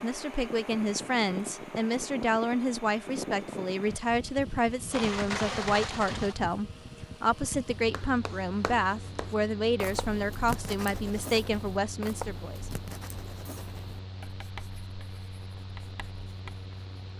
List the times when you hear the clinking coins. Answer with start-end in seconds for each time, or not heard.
4.9-6.4.